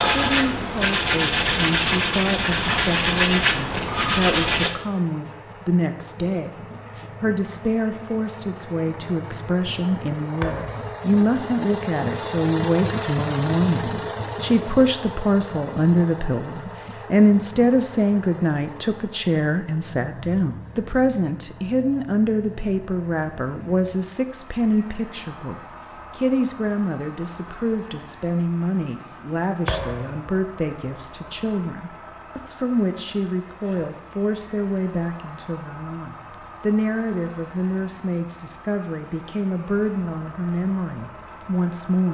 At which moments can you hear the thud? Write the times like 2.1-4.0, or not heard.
10.4-10.9, 29.6-30.3.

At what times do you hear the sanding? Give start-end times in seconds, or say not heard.
0.0-4.7.